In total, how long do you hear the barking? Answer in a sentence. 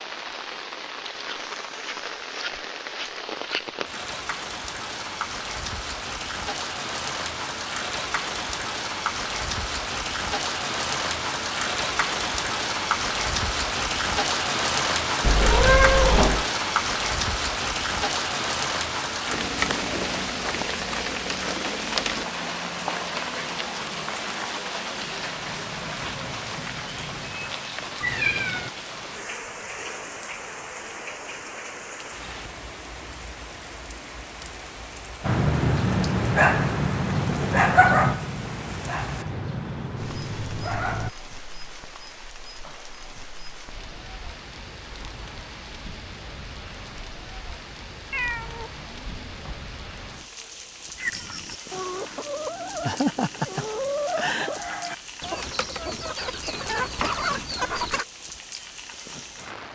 You can hear the barking for 6 seconds altogether.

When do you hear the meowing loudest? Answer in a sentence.
The loudest moment of the meowing is at 16 seconds.